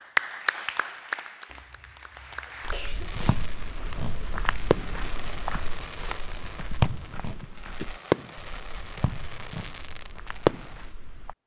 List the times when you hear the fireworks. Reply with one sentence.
You can hear the fireworks from 3.0 to 10.8 s.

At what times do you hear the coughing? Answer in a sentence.
The coughing can be heard from 1.4 to 3.2 s and from 7.4 to 7.9 s.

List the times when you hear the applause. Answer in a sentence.
You can hear the applause from 0.1 to 2.9 s.